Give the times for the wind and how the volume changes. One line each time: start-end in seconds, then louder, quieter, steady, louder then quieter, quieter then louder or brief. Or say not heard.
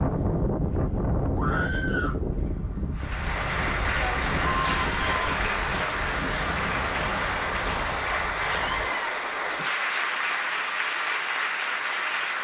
0.0-8.9 quieter.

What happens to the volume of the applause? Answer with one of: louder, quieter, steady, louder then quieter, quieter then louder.
steady.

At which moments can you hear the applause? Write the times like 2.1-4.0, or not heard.
3.0-12.4.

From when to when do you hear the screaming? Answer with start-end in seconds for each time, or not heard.
1.4-2.2, 4.4-5.3, 8.4-9.1.